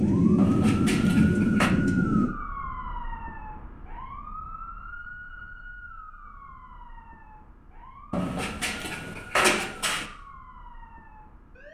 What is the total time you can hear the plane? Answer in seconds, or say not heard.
2 s.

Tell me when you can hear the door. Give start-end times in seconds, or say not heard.
0.3-1.7, 8.1-10.1.